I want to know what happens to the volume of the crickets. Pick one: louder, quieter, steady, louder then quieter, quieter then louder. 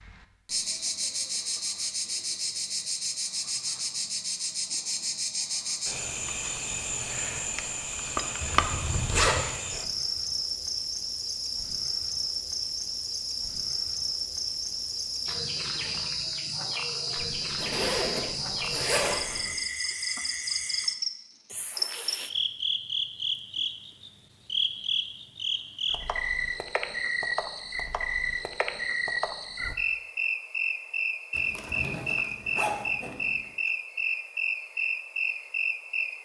steady.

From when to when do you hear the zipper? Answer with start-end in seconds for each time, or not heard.
8.4-9.5, 17.2-19.6, 31.3-33.5.